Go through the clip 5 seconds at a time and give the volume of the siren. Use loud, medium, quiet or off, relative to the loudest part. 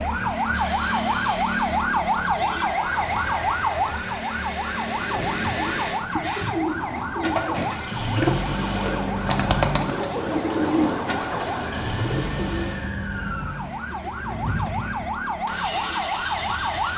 loud, medium, medium, loud.